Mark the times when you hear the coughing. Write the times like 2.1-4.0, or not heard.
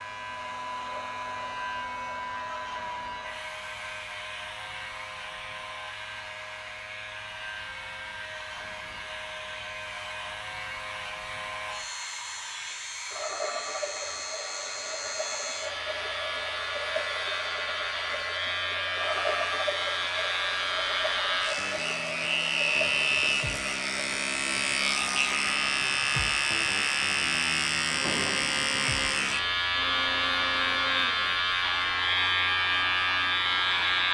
not heard.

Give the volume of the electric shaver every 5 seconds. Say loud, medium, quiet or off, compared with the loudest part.
quiet, quiet, quiet, medium, loud, loud, loud.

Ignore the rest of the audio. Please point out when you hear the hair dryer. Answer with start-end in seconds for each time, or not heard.
0.0-34.0.